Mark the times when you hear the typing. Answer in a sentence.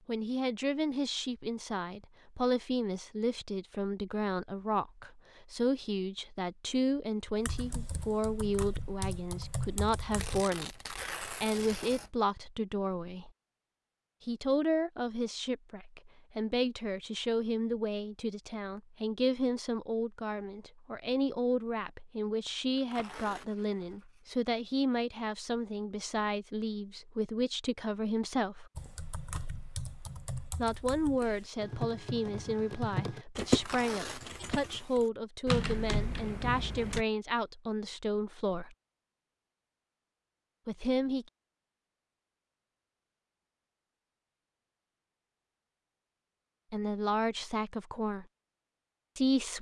You can hear the typing from 7.3 to 10.4 s and from 28.8 to 37.0 s.